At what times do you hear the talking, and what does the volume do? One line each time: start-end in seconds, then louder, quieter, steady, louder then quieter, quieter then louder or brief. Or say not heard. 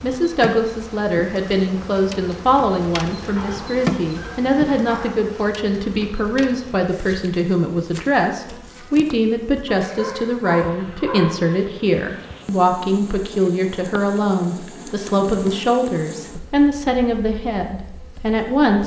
0.0-18.8 steady.